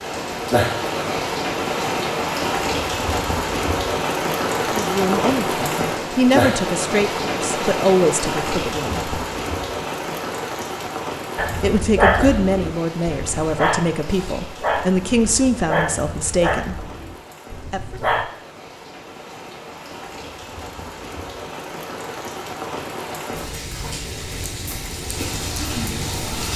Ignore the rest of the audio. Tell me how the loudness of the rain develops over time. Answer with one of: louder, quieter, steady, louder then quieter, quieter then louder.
quieter then louder.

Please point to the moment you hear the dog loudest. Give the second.
12 s.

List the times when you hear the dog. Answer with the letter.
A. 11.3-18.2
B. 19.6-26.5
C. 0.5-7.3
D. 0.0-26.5
A.